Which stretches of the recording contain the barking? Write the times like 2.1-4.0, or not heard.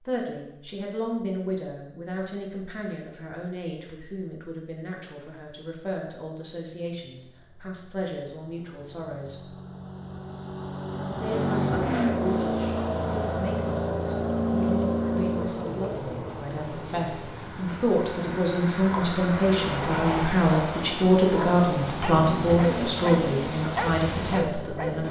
20.4-24.9.